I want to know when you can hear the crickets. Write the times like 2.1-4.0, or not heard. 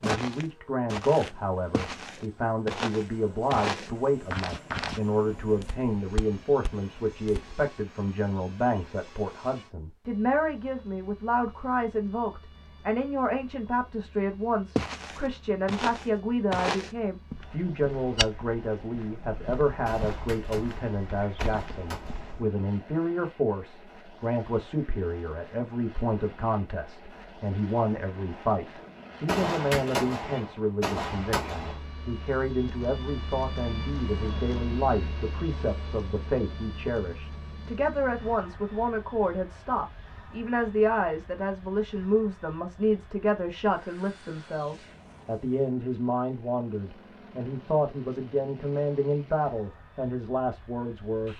not heard.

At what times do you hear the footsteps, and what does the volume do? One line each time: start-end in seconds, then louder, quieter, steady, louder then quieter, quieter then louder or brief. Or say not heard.
0.0-7.6 louder then quieter
14.8-22.4 quieter.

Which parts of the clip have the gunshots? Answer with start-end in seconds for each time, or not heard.
19.9-22.4, 29.2-31.8.